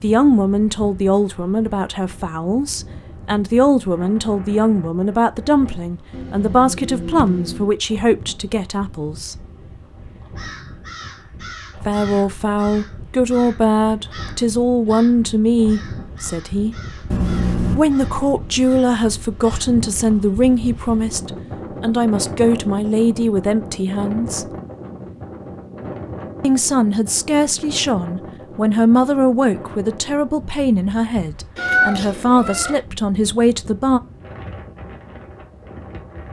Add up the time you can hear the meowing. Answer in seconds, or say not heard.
4 s.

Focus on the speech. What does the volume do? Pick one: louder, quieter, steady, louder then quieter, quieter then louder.
steady.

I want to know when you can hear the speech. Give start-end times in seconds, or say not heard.
0.0-9.4, 11.8-16.9, 17.8-24.4, 26.4-34.0.